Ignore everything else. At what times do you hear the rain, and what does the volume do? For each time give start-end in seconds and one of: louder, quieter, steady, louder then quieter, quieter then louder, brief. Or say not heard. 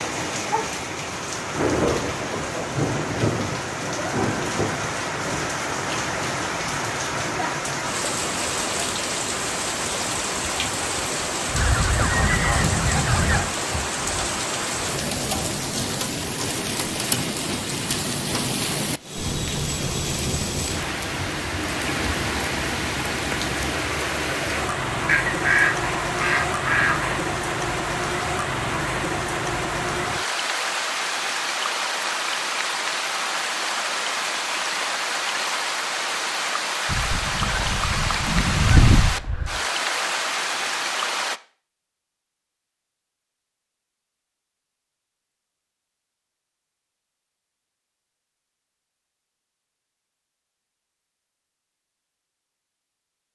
0.0-41.4 steady.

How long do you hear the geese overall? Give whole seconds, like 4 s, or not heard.
7 s.